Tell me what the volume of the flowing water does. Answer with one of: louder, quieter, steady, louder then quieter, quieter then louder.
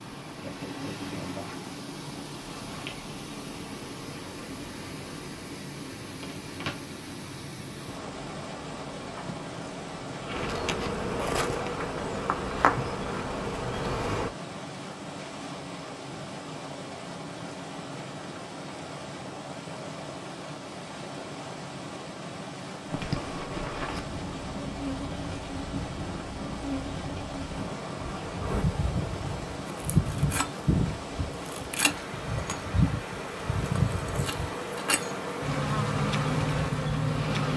steady.